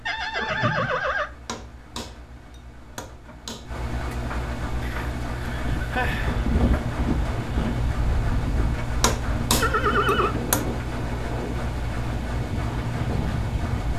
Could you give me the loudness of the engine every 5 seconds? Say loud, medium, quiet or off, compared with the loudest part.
medium, loud, loud.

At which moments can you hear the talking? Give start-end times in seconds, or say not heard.
not heard.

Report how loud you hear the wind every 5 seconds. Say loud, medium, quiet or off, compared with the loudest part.
off, loud, loud.